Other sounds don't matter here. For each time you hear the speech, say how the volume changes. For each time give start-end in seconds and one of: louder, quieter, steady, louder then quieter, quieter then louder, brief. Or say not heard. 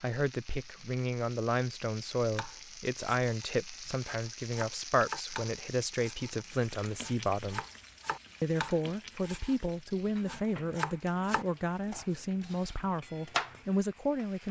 0.0-7.7 steady
8.4-14.4 steady.